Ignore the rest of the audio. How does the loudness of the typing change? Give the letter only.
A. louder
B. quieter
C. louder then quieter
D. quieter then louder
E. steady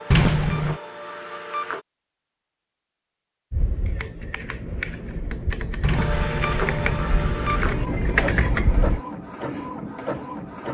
A.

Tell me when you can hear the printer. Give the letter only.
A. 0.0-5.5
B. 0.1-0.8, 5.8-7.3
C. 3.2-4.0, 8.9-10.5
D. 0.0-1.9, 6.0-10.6
D.